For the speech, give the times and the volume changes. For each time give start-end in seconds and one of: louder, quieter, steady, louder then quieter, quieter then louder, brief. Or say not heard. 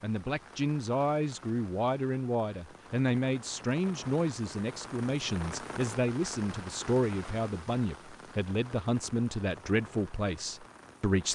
0.0-11.3 steady.